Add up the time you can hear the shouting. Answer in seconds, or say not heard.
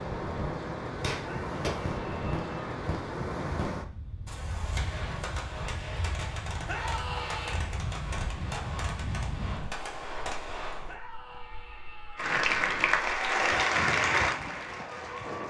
4 s.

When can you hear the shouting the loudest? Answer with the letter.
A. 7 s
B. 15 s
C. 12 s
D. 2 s
A.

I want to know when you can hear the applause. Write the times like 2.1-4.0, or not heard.
12.2-15.4.